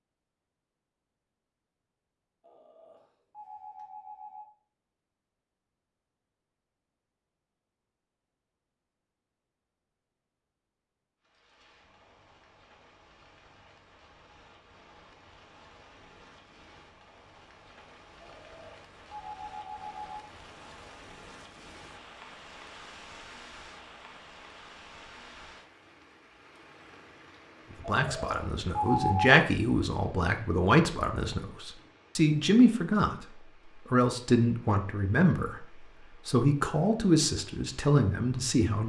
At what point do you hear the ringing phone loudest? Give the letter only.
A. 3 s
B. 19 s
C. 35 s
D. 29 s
D.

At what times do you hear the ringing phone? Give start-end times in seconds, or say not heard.
2.4-4.5, 18.2-20.2, 27.9-29.4.